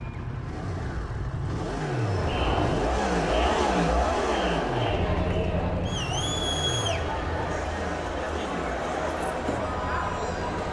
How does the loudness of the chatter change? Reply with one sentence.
The volume of the chatter stays about the same.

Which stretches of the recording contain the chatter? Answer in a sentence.
The chatter can be heard from 1.8 to 10.6 s.